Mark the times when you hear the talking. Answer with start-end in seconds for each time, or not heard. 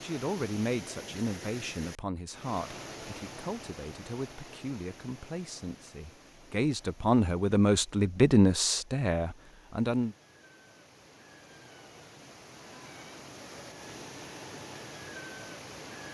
0.0-10.2.